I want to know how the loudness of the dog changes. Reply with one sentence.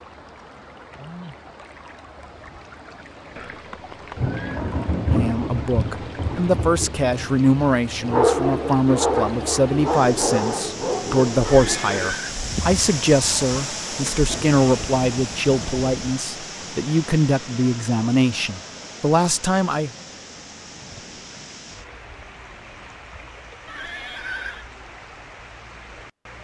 The volume of the dog goes down.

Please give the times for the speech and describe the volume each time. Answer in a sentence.
The speech can be heard from 5.1 to 19.9 s, at a steady volume.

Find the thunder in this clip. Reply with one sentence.
The thunder can be heard from 4.2 to 8.2 s and from 14.2 to 16.1 s.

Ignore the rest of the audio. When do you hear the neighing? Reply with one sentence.
The neighing can be heard from 3.4 to 4.6 s, from 11.4 to 12.4 s and from 23.6 to 24.6 s.